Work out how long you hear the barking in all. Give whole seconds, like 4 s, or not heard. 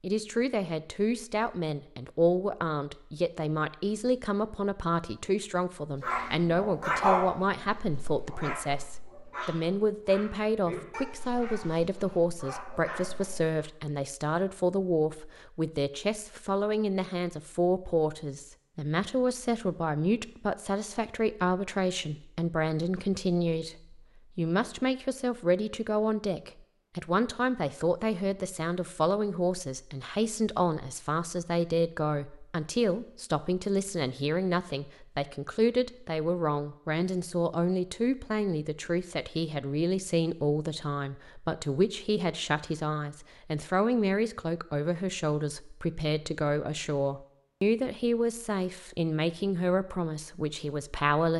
8 s.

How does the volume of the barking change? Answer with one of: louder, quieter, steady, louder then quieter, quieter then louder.
quieter.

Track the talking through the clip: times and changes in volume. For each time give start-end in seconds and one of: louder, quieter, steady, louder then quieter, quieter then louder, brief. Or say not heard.
0.0-51.3 steady.